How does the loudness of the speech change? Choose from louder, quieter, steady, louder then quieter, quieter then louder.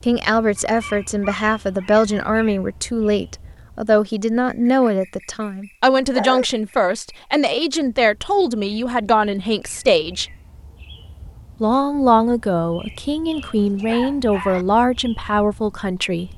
steady.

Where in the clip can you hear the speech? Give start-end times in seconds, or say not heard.
0.0-10.3, 11.6-16.3.